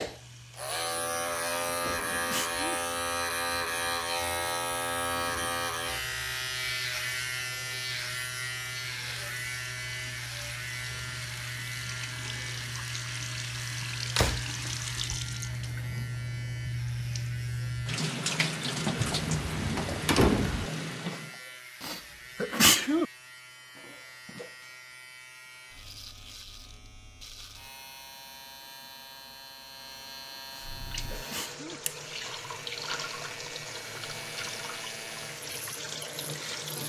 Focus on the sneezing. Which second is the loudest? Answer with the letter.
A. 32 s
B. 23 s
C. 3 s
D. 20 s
B.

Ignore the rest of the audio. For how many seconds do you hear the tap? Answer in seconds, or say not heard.
28 s.